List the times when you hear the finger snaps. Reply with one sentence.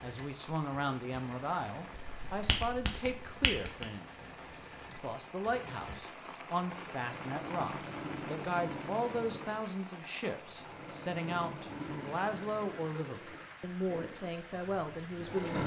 The finger snaps can be heard from 2.1 to 3.9 s.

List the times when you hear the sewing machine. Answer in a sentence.
You can hear the sewing machine from 0.0 to 15.6 s.